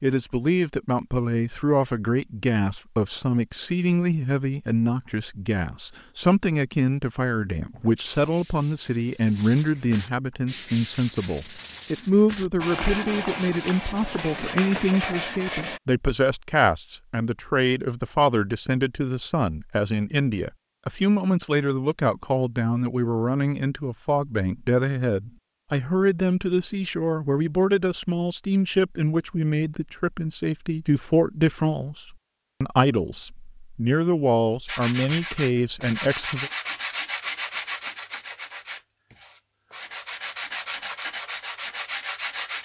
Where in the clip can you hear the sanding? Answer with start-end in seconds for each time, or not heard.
7.7-15.8, 34.6-42.5.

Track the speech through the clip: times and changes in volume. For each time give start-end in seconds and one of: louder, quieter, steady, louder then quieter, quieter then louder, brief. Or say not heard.
0.0-36.5 steady.